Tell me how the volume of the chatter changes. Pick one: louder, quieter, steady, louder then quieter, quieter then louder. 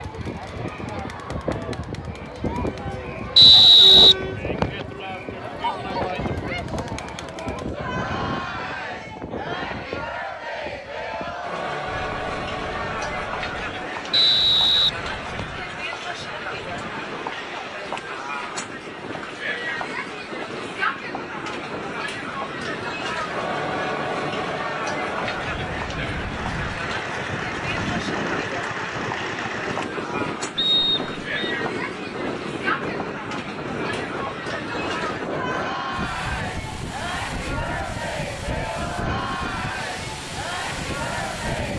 steady.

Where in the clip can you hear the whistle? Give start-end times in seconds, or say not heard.
3.4-4.8, 14.1-15.6, 30.6-31.6.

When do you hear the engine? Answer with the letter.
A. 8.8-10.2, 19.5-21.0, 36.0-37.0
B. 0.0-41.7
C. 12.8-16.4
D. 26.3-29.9
D.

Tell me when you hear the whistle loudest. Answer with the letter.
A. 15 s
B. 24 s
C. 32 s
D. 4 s
D.